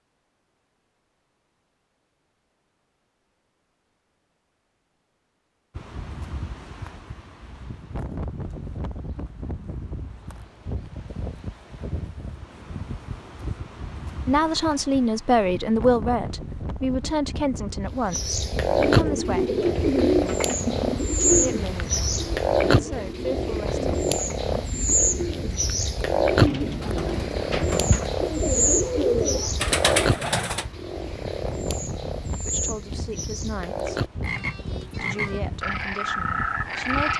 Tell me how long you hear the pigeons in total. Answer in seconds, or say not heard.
12 s.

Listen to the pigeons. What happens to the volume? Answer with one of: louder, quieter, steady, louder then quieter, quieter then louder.
quieter then louder.